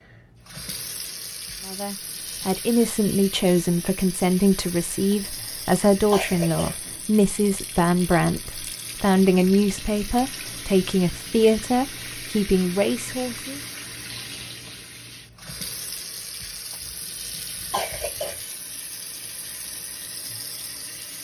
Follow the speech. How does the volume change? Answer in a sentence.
The volume of the speech stays about the same.